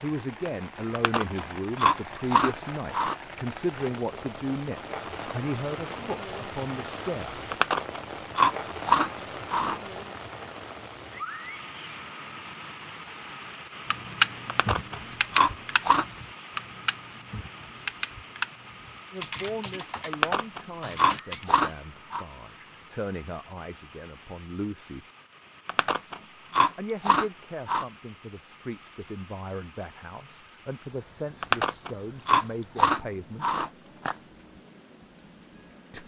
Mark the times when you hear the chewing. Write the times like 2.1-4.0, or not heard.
0.9-3.1, 7.5-10.2, 14.4-16.1, 20.1-22.2, 25.6-27.9, 31.4-34.1.